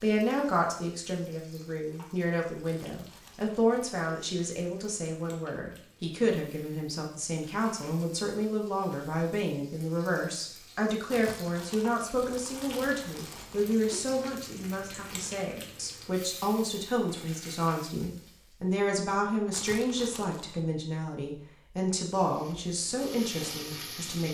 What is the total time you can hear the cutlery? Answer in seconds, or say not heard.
not heard.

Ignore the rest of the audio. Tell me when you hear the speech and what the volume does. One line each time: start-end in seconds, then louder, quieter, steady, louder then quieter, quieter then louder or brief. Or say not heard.
0.0-24.3 steady.